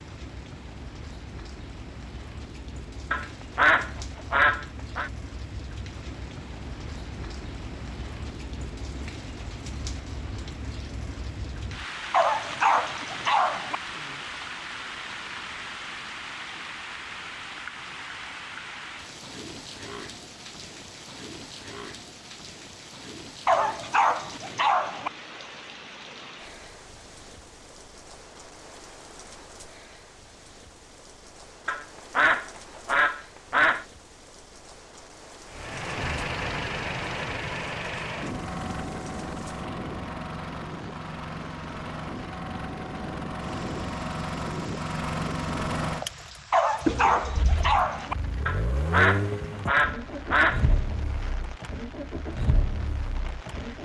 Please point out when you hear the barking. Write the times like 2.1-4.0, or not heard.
12.1-13.8, 23.4-25.1, 46.5-48.1.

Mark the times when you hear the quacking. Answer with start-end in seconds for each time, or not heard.
3.1-5.1, 31.6-33.9, 48.5-50.8.